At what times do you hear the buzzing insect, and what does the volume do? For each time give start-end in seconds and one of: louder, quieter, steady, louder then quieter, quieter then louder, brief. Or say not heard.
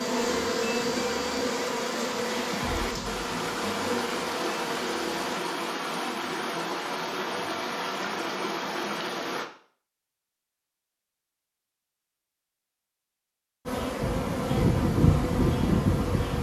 0.0-5.4 quieter
13.7-16.3 brief.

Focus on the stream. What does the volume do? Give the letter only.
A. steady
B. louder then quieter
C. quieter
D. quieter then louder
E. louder
A.